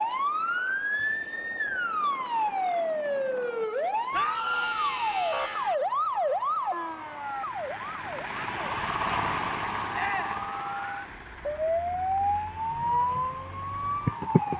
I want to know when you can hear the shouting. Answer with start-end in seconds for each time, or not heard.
4.1-5.8, 9.9-10.4.